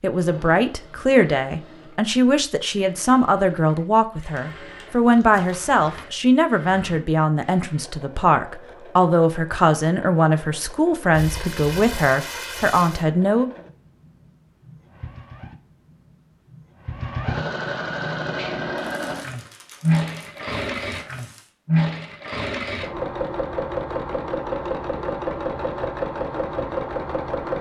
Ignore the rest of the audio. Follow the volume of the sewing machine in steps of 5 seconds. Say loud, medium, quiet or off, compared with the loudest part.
quiet, quiet, quiet, loud, loud, loud.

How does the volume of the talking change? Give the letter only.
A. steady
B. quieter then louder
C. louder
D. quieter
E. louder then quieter
A.